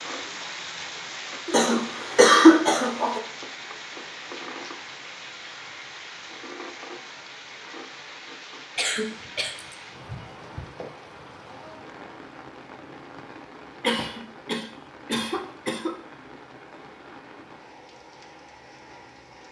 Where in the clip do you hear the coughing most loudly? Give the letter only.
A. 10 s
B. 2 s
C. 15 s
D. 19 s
B.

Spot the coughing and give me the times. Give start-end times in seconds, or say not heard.
1.4-3.2, 8.8-10.7, 13.8-15.9.